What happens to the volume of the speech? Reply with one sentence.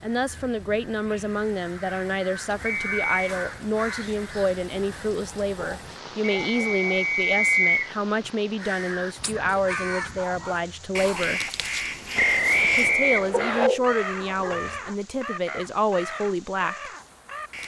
The loudness of the speech stays about the same.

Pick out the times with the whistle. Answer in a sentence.
You can hear the whistle from 2.6 to 3.1 s, from 6.5 to 7.9 s and from 12.2 to 13.7 s.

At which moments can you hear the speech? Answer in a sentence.
The speech can be heard from 0.0 to 11.4 s and from 12.8 to 16.9 s.